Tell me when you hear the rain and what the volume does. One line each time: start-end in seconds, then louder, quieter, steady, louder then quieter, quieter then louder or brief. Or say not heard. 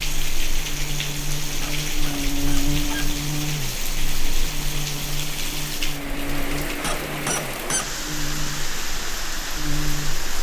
0.0-10.3 steady.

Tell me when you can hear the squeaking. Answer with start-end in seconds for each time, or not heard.
1.6-3.1, 6.8-7.9.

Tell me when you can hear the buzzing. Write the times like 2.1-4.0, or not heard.
0.0-10.3.